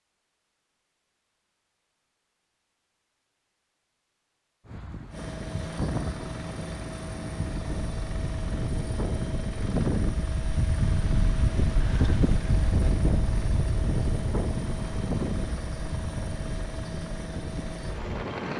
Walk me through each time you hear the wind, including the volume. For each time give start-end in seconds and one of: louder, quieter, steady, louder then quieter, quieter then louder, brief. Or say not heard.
4.7-18.5 louder then quieter.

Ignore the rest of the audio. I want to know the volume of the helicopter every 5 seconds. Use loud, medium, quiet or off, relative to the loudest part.
off, loud, loud, loud.